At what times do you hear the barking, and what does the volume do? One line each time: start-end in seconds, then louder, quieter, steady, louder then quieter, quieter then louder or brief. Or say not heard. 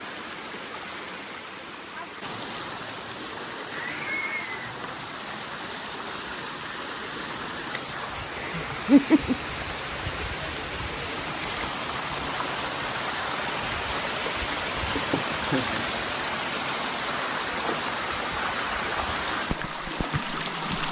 not heard.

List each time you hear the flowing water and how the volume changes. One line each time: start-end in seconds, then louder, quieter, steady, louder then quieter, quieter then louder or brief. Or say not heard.
0.0-20.8 louder.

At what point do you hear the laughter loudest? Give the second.
9 s.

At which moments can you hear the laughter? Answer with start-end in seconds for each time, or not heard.
3.7-4.6, 8.3-9.3, 14.9-15.8.